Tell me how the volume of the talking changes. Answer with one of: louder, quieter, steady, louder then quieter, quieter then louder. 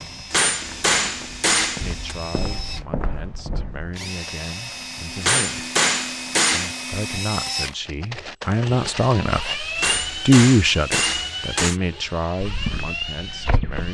louder then quieter.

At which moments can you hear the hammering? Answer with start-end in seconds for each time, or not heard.
0.3-2.1, 5.2-6.8, 9.8-11.8.